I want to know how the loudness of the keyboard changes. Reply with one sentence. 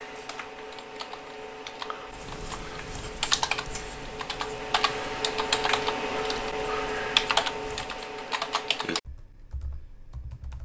The loudness of the keyboard goes up, then down.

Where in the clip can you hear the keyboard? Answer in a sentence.
You can hear the keyboard from 0.0 to 10.6 s.